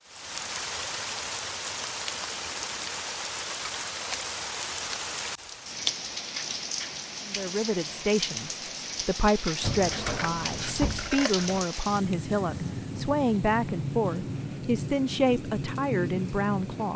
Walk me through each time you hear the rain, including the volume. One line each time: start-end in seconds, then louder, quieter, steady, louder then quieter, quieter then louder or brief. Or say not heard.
0.0-16.9 steady.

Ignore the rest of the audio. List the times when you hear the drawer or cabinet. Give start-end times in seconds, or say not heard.
9.6-11.7.